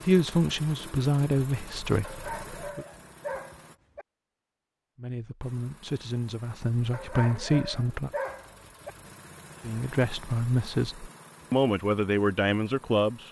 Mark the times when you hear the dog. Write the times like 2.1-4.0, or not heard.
2.0-4.0, 6.9-8.9.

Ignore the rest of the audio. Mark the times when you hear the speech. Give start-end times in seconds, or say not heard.
0.0-2.9, 5.0-8.1, 9.7-13.2.